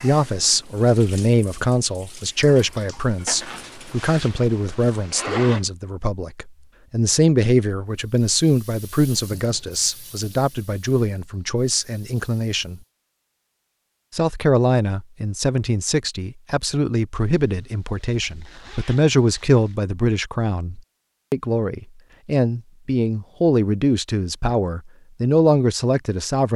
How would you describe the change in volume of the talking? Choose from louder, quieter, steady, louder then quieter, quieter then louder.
steady.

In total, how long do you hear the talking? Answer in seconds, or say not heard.
25 s.